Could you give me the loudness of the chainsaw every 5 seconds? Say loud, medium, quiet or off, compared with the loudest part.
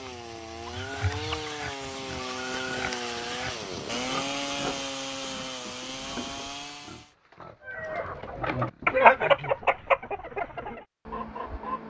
loud, loud, off.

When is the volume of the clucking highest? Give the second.
9 s.